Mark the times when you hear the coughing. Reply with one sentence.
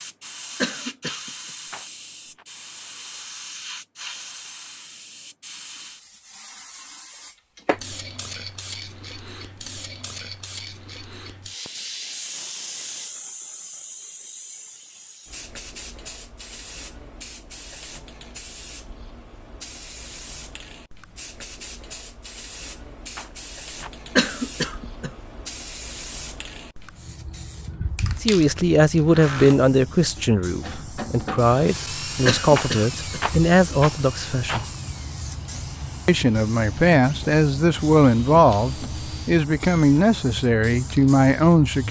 The coughing can be heard from 0.6 to 1.3 s, from 24.1 to 25.1 s and from 32.2 to 33.2 s.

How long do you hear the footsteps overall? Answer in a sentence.
You can't hear the footsteps here.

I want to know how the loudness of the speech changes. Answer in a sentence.
The volume of the speech stays about the same.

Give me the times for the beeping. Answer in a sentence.
The beeping can't be heard in this clip.